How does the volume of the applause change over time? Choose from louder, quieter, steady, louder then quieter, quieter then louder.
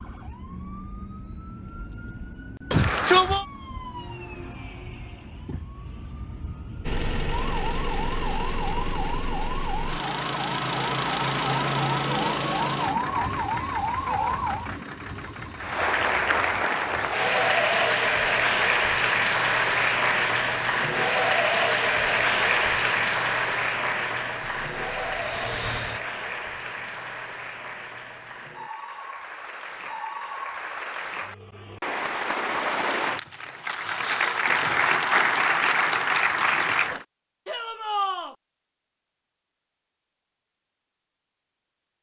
quieter then louder.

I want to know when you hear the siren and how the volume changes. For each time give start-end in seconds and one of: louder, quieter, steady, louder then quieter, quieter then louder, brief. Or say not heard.
0.0-14.7 louder.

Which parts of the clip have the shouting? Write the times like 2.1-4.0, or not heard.
2.7-3.5, 37.5-38.4.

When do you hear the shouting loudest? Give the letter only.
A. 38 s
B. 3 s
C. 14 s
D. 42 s
B.